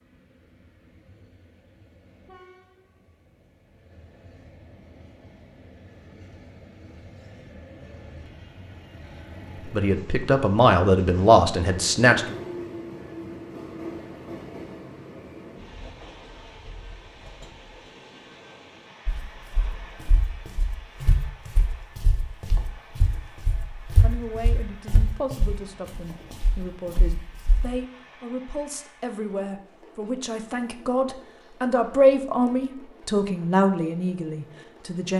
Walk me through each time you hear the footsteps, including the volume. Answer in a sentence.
You can hear the footsteps from 19.1 to 27.8 s, getting louder then quieter.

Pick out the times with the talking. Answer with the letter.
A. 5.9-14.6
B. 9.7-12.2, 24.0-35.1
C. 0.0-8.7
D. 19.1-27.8
B.